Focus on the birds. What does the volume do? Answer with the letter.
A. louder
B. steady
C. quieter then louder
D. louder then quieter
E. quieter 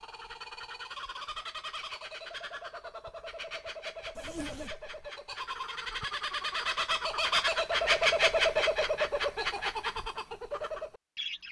D.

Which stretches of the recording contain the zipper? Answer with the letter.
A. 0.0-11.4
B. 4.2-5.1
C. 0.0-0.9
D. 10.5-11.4
B.